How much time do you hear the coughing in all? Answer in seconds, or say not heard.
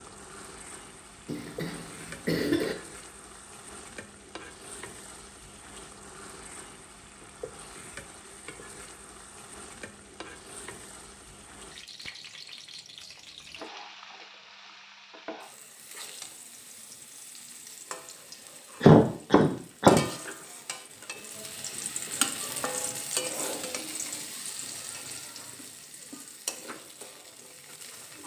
3 s.